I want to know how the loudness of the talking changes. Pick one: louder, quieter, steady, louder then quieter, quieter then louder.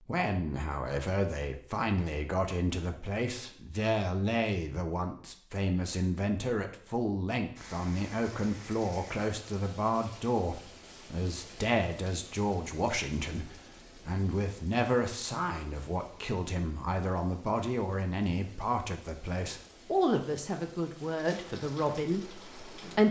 steady.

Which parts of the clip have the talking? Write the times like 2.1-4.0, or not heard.
0.1-23.0.